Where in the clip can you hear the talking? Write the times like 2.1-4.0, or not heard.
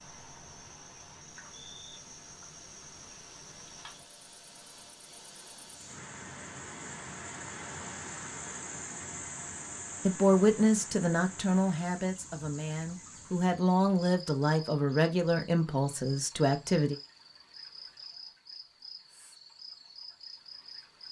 10.1-16.9.